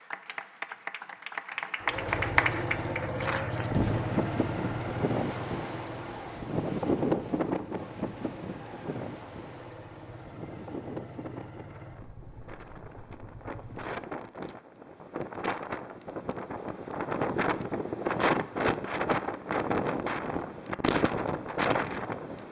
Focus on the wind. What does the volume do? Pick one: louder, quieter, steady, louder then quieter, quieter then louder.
quieter then louder.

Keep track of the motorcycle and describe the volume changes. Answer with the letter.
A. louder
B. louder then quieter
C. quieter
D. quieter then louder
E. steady
C.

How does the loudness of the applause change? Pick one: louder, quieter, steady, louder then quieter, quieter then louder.
louder then quieter.